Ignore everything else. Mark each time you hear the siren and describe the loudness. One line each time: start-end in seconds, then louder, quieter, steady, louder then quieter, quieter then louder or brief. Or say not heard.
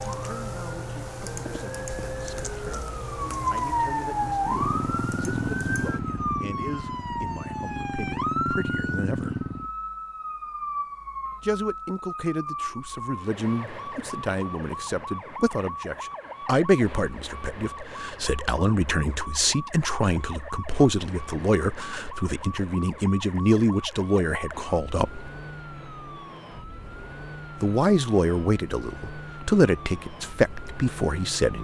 0.0-31.5 quieter.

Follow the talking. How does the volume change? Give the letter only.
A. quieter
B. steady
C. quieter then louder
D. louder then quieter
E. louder
E.